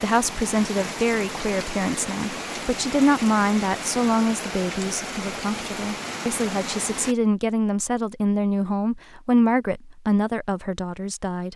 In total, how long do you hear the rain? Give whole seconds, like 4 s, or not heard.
7 s.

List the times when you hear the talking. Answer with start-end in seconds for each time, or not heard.
0.0-11.5.